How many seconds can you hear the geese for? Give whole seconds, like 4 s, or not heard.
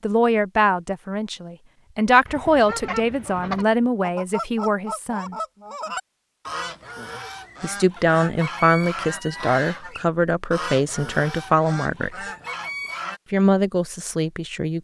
11 s.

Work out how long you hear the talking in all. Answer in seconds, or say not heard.
11 s.